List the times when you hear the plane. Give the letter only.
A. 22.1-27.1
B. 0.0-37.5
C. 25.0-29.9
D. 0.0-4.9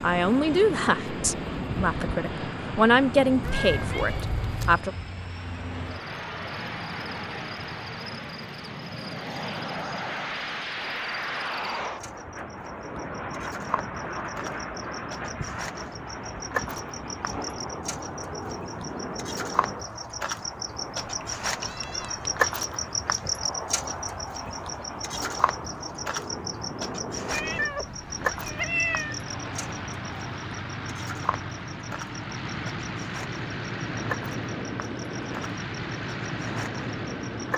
B.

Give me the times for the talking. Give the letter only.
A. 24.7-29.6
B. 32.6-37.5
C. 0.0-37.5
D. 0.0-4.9
D.